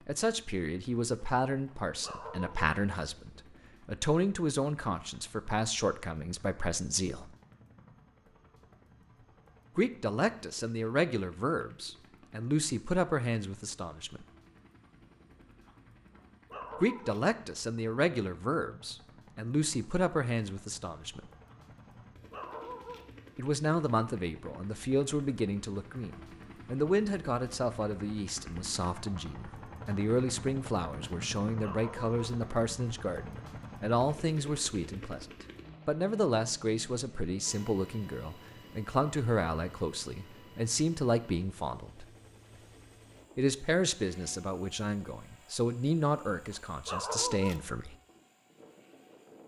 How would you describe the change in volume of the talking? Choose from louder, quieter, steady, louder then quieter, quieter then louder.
steady.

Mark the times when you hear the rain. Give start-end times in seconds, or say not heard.
not heard.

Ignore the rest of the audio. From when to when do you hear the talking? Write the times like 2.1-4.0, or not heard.
0.1-7.3, 9.8-14.2, 16.8-21.3, 23.4-42.0, 43.4-48.0.